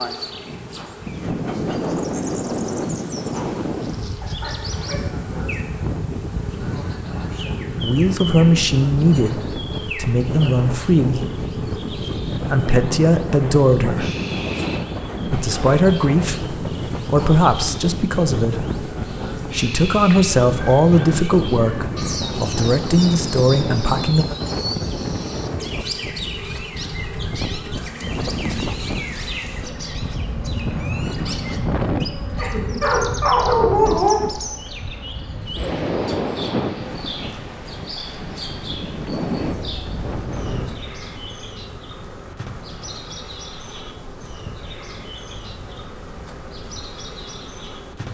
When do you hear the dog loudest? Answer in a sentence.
The volume of the dog peaks at 34 seconds.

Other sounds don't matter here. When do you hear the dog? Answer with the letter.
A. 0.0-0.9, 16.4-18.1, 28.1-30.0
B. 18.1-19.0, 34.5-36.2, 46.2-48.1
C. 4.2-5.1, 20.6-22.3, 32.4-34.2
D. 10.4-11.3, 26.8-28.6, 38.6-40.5
C.